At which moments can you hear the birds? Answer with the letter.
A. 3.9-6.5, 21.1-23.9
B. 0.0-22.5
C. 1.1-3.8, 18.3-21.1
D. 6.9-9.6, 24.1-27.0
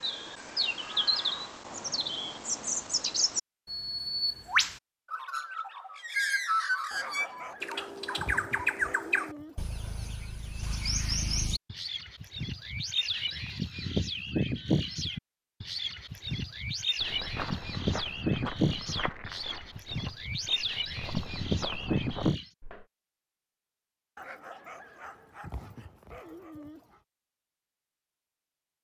B.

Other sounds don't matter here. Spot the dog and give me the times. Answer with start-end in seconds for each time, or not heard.
6.9-9.6, 24.1-27.0.